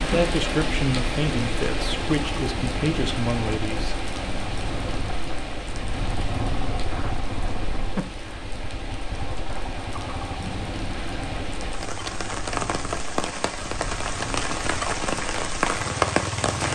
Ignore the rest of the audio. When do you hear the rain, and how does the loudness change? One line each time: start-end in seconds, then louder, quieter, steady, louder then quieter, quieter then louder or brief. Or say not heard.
0.0-16.6 quieter then louder.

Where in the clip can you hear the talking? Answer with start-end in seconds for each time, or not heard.
0.0-4.0.